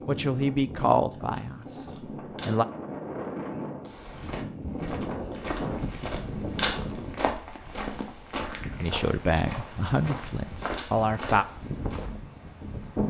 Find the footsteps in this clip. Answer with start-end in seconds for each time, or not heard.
3.8-12.2.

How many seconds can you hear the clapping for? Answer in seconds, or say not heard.
not heard.